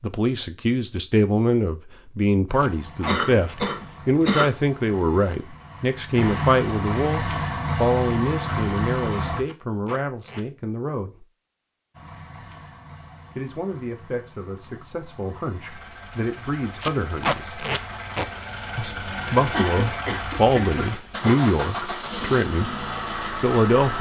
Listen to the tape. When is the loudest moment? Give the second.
17 s.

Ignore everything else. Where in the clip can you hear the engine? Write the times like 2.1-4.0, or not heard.
2.5-9.4, 11.9-23.9.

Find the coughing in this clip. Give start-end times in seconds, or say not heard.
3.0-4.5, 19.5-21.4.